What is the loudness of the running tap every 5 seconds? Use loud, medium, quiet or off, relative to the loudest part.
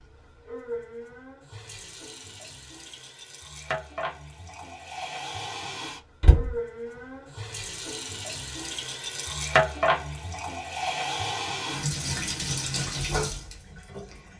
medium, loud, loud.